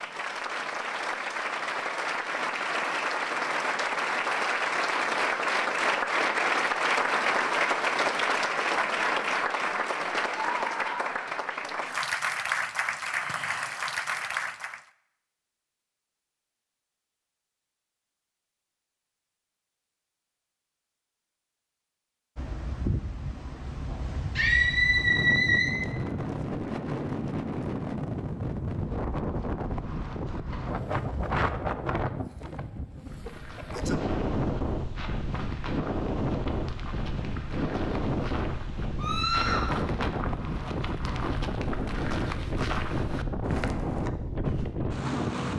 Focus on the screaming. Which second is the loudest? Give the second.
25 s.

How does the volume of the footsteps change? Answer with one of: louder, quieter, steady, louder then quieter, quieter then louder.
louder.